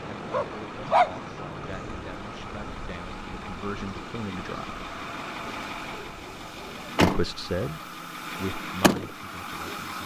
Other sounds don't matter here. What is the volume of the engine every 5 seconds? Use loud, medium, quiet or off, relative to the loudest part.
medium, loud.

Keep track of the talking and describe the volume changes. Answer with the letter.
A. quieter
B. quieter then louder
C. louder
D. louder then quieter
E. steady
D.